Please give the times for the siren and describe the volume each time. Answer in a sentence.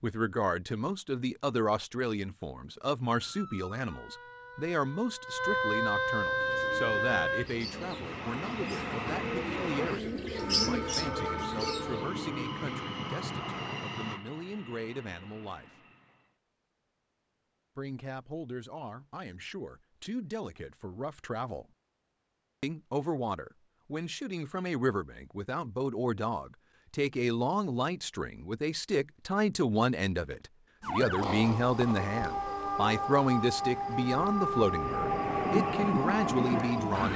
The siren can be heard from 3.0 to 7.5 s, getting louder; and from 30.8 to 37.1 s, at a steady volume.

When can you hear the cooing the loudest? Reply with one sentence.
The loudest moment of the cooing is at 11 seconds.